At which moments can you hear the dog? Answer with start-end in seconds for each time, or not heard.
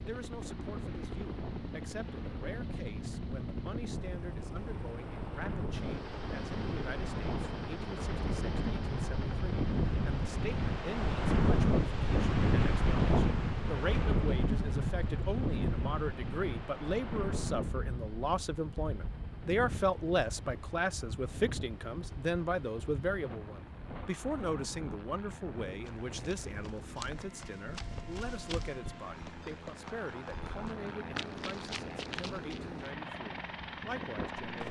not heard.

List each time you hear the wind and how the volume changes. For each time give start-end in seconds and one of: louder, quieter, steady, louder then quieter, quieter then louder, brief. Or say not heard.
0.0-34.5 louder then quieter.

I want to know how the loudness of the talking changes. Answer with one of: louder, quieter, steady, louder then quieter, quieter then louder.
louder then quieter.